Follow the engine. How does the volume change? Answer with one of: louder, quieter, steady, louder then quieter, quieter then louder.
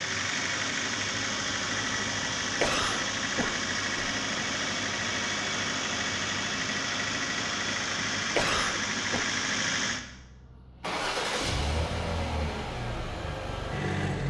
steady.